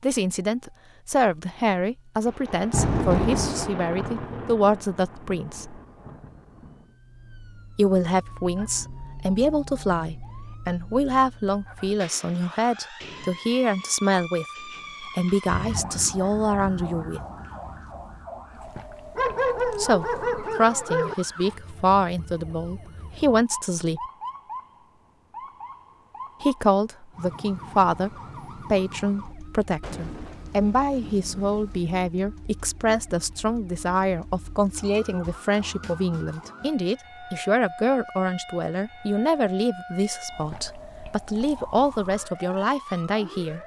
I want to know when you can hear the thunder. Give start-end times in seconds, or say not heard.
2.2-6.8, 15.4-18.2, 29.8-31.9.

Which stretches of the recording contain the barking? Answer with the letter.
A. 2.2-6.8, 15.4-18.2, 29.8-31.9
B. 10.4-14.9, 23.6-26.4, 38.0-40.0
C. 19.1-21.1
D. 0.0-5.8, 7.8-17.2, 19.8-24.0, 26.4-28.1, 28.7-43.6
C.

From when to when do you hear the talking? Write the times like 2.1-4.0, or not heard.
0.0-5.8, 7.8-17.2, 19.8-24.0, 26.4-28.1, 28.7-43.6.